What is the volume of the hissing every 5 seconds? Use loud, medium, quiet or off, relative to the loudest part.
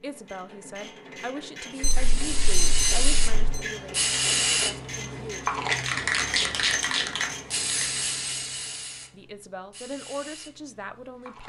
loud, loud, quiet.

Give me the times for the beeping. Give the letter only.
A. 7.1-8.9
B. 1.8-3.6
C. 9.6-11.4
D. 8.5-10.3
B.